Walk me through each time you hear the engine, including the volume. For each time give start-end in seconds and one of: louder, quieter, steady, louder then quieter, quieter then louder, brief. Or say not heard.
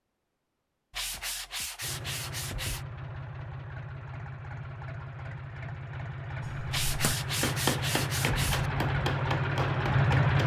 1.8-10.4 louder.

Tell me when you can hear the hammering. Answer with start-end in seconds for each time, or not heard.
6.5-10.4.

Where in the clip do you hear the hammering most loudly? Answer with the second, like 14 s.
8 s.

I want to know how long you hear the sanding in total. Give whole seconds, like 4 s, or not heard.
4 s.